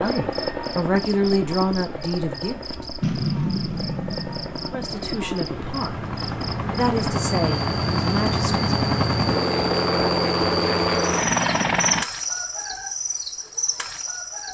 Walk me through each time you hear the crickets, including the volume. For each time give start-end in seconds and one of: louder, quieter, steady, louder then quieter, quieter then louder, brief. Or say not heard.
0.0-14.4 louder.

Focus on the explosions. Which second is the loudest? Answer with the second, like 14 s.
3 s.